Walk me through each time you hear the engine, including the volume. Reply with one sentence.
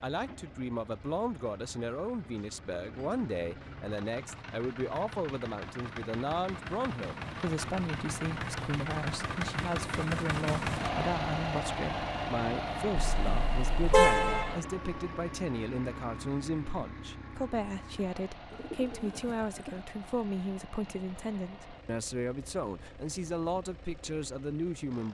You can hear the engine from 0.0 to 25.0 s, getting louder then quieter.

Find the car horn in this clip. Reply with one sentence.
You can hear the car horn from 13.1 to 14.6 s.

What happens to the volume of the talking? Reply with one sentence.
The loudness of the talking stays about the same.